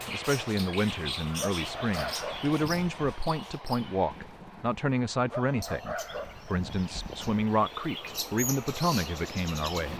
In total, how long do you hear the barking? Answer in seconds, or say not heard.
4 s.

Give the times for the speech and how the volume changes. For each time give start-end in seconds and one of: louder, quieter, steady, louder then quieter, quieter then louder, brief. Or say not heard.
0.1-9.9 steady.